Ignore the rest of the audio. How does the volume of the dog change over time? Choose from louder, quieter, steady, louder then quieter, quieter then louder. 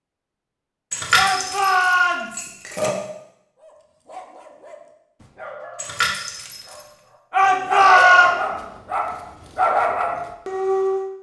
louder.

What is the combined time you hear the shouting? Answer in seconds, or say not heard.
2 s.